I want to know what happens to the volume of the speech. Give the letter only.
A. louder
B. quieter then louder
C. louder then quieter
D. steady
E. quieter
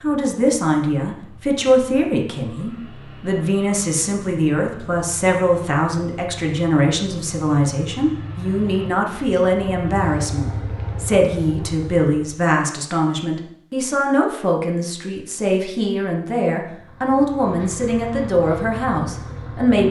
D.